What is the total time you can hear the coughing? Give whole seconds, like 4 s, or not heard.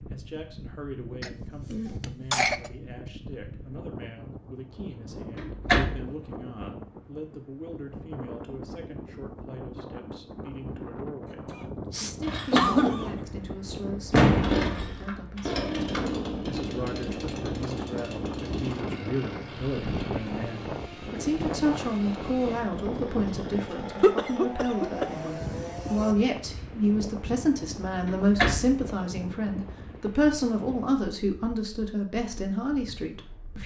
5 s.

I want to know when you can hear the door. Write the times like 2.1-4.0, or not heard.
5.1-6.0, 14.1-14.7, 28.1-28.8.